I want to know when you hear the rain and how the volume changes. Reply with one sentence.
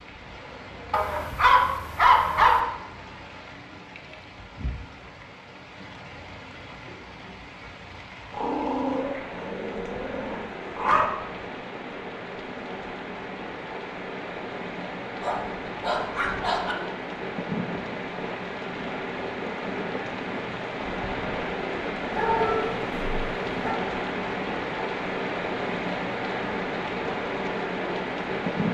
You can hear the rain from 0.0 to 28.6 s, getting louder.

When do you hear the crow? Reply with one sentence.
You can't hear the crow here.